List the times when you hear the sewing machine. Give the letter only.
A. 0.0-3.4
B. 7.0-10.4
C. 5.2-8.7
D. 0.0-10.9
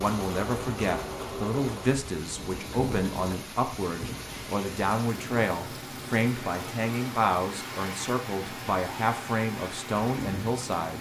A.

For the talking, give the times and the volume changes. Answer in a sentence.
The talking can be heard from 0.0 to 10.9 s, at a steady volume.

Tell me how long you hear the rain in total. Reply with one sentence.
You can hear the rain for 11 seconds altogether.